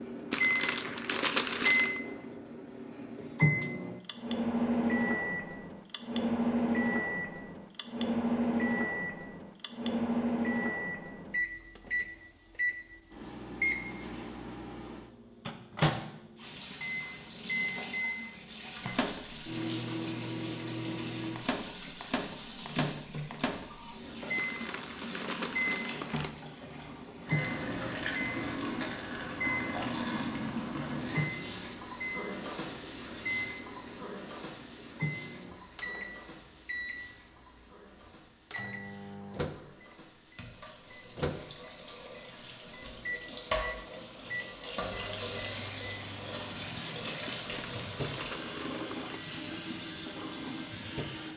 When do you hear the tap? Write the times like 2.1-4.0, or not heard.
16.4-51.3.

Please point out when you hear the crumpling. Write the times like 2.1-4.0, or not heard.
0.3-2.0, 24.4-26.4, 47.2-49.2.